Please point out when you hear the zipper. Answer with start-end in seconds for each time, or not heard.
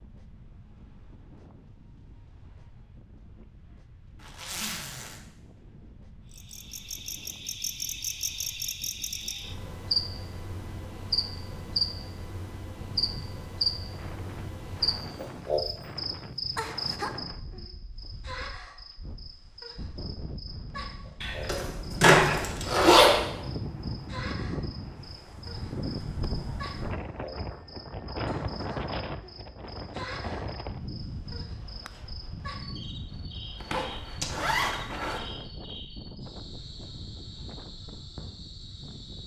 4.2-5.2, 21.2-23.2, 33.6-35.2.